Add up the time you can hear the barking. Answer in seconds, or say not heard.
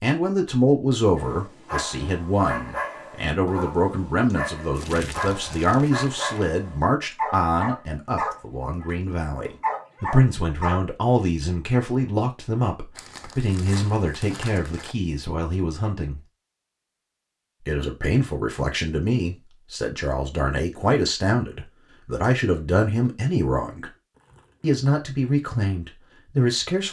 10 s.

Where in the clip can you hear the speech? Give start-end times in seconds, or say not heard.
0.0-16.2, 17.6-23.9, 24.6-26.8.